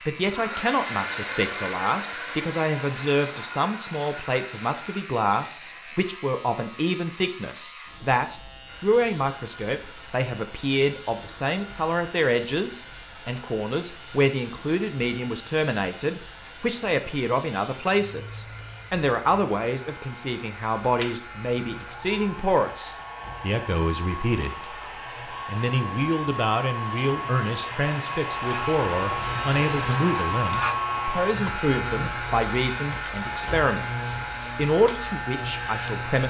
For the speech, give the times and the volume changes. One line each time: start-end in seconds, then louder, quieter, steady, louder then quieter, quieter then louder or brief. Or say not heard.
0.1-36.2 steady.